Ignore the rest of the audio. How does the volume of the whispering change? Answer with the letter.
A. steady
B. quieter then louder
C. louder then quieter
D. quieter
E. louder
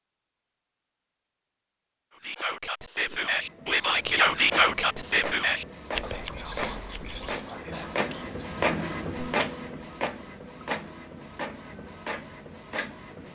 C.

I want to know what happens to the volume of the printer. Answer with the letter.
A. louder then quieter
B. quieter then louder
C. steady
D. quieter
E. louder
A.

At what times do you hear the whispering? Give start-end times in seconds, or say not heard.
2.1-8.6.